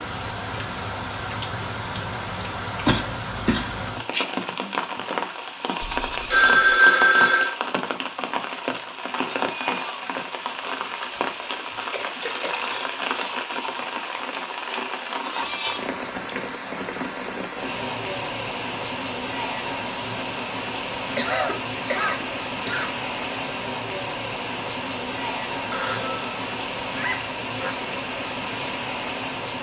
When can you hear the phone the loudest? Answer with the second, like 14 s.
7 s.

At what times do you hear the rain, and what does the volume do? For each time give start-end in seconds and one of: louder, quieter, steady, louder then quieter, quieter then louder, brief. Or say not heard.
0.0-29.5 steady.